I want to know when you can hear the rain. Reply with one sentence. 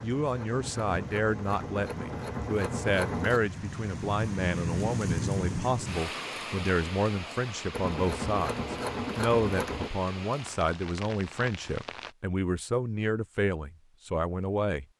The rain can be heard from 0.0 to 12.2 s.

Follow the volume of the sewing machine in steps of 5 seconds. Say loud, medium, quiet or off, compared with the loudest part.
loud, loud, off.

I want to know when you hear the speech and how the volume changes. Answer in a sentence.
You can hear the speech from 0.0 to 14.8 s, at a steady volume.